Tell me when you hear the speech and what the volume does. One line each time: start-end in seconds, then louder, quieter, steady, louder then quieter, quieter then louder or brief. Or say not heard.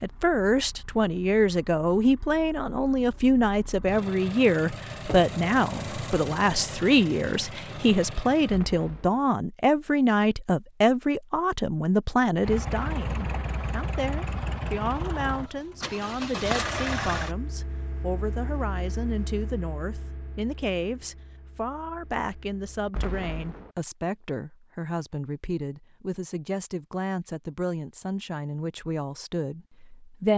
0.0-30.3 quieter.